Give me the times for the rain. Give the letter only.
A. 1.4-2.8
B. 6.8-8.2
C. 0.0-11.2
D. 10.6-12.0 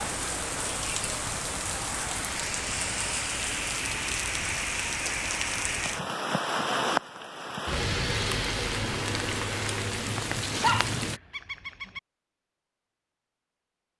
C.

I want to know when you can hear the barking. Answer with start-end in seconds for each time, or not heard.
10.6-12.0.